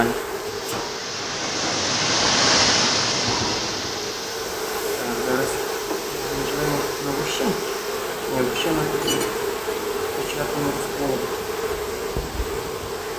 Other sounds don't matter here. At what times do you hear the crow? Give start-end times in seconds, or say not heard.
not heard.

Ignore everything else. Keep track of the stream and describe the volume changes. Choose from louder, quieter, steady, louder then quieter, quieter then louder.
quieter.